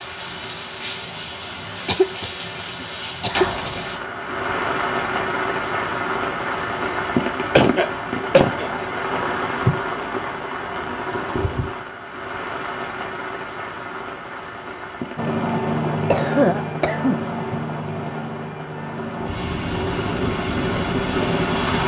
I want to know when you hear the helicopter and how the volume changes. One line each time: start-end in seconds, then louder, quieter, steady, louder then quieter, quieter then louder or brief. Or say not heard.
15.2-21.8 quieter then louder.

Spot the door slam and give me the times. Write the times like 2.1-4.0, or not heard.
3.3-4.0.